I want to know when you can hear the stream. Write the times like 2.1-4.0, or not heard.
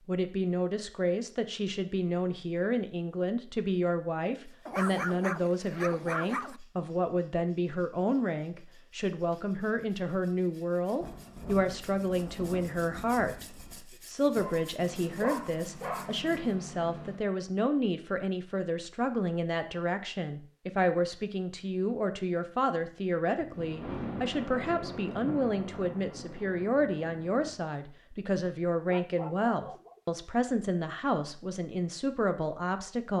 not heard.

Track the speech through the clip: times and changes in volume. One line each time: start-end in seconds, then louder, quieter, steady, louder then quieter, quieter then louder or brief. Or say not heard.
0.1-33.1 steady.